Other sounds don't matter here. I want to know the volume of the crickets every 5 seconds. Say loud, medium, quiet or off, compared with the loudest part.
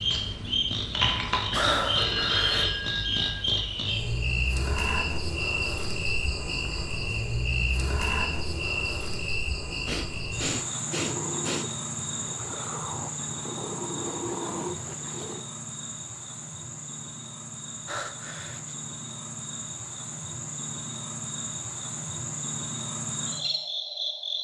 loud, loud, medium, medium, medium.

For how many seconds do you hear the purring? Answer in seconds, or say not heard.
7 s.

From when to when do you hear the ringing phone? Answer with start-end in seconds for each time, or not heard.
1.9-3.5.